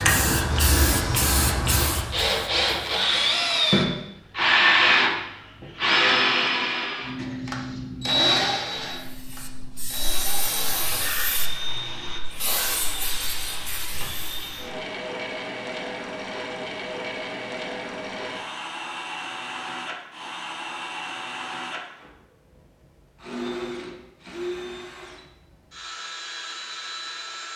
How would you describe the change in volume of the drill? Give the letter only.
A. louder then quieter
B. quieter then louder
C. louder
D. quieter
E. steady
D.